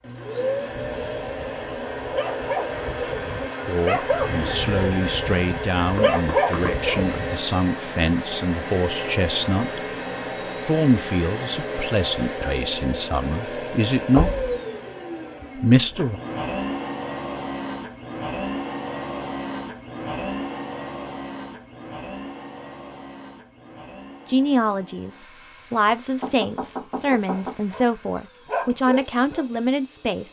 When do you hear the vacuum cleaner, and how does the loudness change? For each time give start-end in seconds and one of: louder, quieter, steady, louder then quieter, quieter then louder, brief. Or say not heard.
0.0-30.2 quieter.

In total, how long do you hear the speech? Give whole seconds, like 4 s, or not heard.
16 s.